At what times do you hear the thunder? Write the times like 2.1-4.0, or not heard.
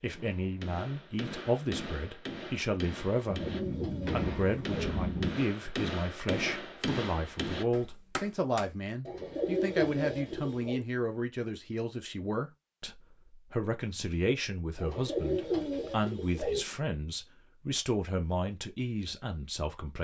3.3-5.3.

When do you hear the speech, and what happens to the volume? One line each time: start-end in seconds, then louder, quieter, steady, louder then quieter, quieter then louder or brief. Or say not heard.
0.0-19.9 steady.